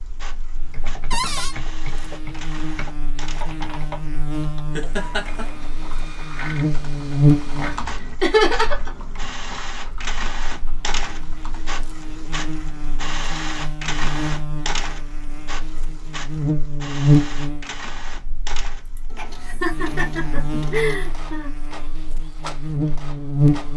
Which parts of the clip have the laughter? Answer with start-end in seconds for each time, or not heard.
4.8-5.5, 8.2-8.9, 18.9-21.5.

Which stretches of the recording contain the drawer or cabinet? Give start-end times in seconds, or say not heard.
1.1-1.6.